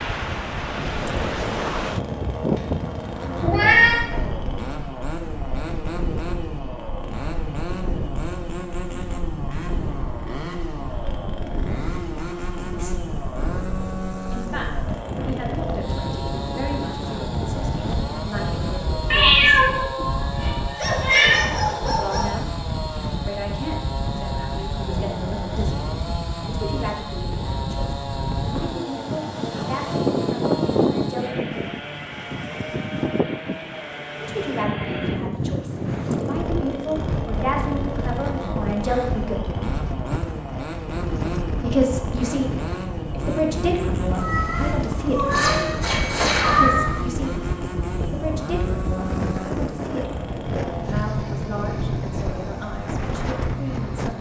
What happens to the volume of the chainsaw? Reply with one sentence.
The loudness of the chainsaw stays about the same.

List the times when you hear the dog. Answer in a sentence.
You can hear the dog from 20.8 to 22.4 s.